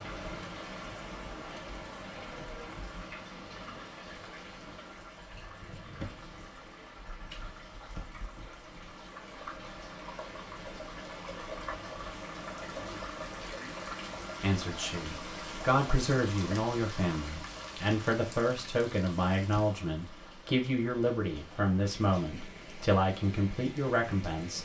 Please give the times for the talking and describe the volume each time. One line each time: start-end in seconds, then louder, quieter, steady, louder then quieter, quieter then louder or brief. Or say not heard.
14.4-24.5 steady.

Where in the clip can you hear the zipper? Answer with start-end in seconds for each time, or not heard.
not heard.